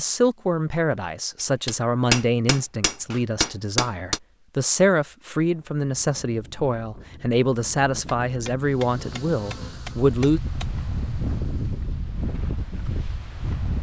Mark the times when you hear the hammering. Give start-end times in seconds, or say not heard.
1.6-4.2, 8.1-10.7.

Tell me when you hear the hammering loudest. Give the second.
2 s.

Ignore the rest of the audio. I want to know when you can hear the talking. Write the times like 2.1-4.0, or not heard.
0.0-10.4.